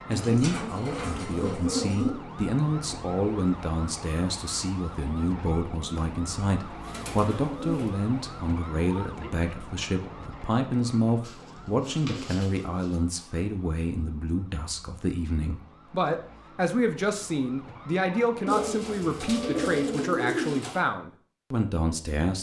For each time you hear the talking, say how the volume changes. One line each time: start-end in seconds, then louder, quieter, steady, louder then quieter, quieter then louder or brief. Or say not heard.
0.1-22.3 steady.